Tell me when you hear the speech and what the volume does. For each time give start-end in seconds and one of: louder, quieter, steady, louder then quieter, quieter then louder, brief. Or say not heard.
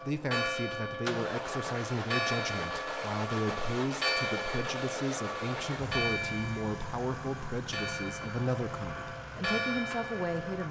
0.0-10.6 steady.